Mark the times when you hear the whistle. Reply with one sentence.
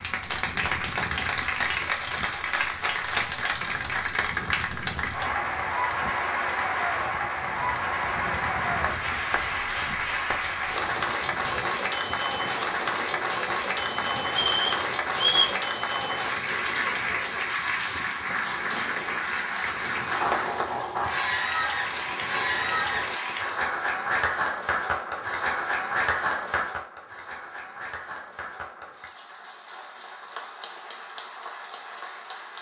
You can hear the whistle from 14.4 to 15.6 s.